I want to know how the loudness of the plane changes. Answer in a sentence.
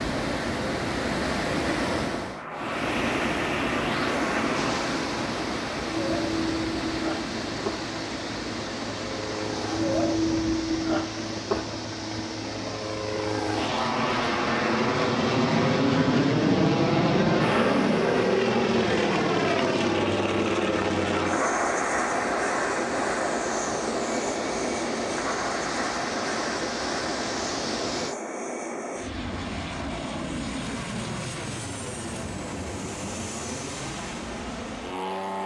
The volume of the plane goes up, then down.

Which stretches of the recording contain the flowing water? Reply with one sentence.
The flowing water can be heard from 0.0 to 28.1 s.